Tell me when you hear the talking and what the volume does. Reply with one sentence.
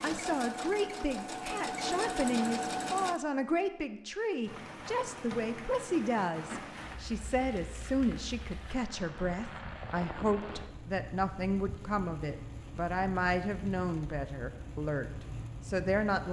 You can hear the talking from 0.0 to 16.2 s, at a steady volume.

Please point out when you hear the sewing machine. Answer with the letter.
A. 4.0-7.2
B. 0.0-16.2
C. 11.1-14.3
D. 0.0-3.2
D.